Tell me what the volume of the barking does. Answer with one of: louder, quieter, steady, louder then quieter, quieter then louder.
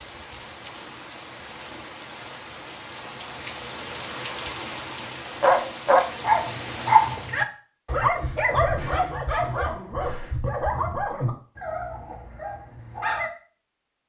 quieter.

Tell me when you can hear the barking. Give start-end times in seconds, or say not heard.
5.4-13.3.